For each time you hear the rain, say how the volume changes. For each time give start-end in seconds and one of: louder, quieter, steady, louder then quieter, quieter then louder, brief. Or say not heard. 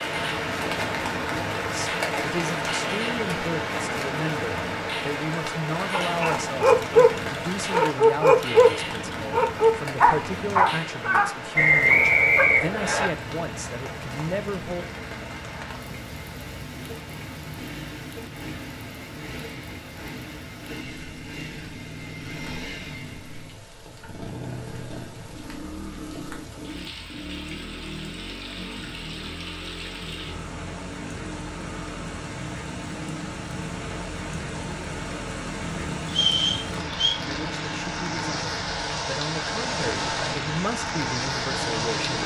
0.0-42.2 quieter then louder.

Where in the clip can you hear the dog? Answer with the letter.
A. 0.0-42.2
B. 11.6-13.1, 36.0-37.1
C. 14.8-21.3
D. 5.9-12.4
D.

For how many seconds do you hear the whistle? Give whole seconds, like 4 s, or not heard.
3 s.